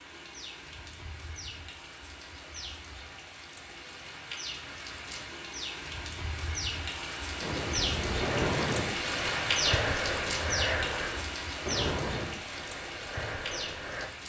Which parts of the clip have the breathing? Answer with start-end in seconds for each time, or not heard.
7.4-14.1.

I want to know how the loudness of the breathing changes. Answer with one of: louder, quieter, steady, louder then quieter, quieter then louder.
quieter.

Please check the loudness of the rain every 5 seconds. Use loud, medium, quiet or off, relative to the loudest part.
medium, loud, loud.